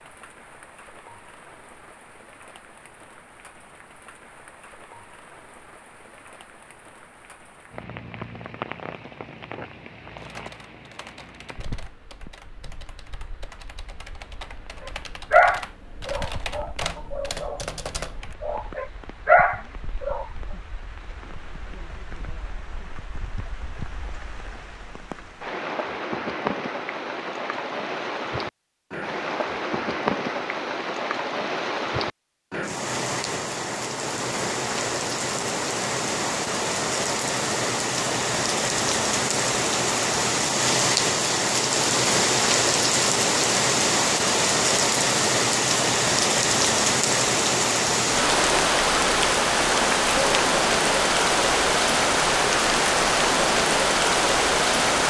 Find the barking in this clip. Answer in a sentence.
The barking can be heard from 15.3 to 17.6 s and from 18.4 to 20.2 s.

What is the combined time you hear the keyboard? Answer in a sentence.
The keyboard can be heard for 8 seconds in total.